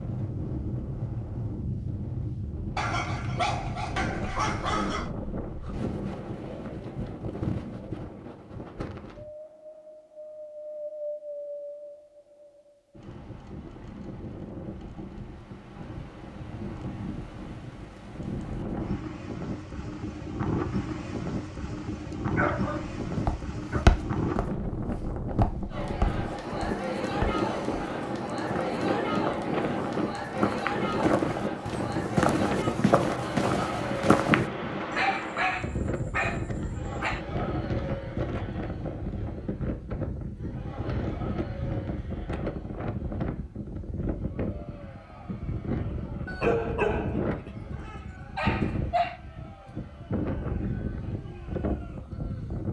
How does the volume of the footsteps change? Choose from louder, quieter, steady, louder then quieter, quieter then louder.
quieter then louder.